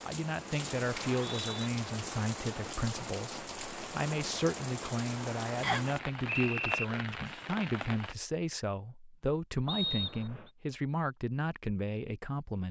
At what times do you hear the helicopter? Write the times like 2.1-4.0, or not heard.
not heard.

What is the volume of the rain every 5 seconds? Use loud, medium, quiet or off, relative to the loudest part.
loud, loud, off.